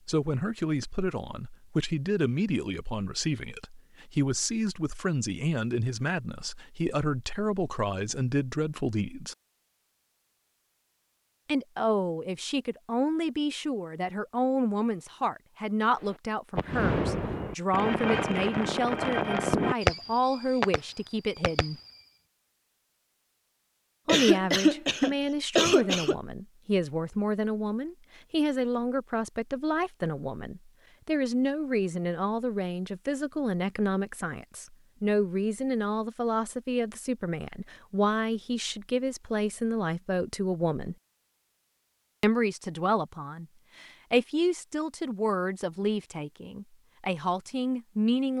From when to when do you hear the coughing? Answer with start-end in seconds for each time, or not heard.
24.1-26.1.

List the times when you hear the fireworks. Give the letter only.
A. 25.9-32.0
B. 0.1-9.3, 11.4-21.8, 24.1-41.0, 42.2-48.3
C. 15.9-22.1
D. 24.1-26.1
C.